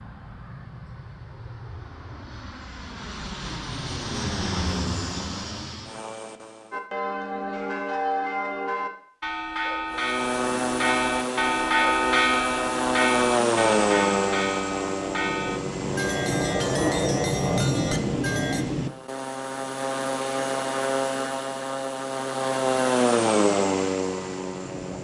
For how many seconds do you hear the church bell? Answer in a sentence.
The church bell can be heard for 12 seconds in total.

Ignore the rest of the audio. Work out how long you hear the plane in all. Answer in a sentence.
You can hear the plane for 22 seconds altogether.